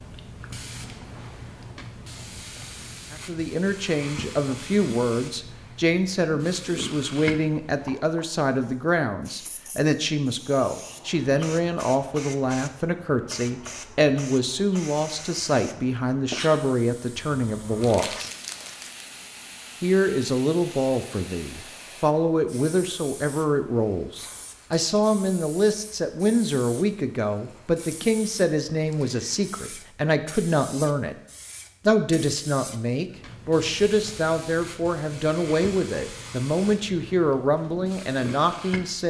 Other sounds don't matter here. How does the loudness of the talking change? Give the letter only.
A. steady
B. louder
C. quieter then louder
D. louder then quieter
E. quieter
A.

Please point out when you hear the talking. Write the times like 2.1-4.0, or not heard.
3.1-18.1, 19.8-31.1, 31.9-39.0.